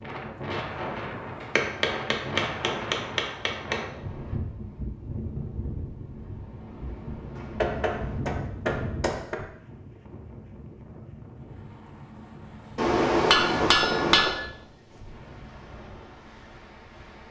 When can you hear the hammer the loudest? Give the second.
13 s.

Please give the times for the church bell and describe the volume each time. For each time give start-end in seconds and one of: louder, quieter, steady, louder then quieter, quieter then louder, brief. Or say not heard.
not heard.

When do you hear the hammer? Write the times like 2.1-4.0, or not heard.
1.4-3.9, 7.3-9.3, 12.8-14.3.